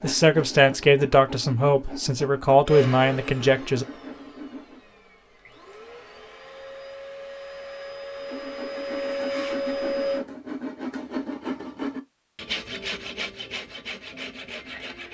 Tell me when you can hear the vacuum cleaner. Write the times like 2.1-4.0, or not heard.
2.6-10.2.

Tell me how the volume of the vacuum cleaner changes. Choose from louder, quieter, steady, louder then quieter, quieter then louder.
quieter then louder.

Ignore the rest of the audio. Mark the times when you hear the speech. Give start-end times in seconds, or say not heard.
0.0-3.9.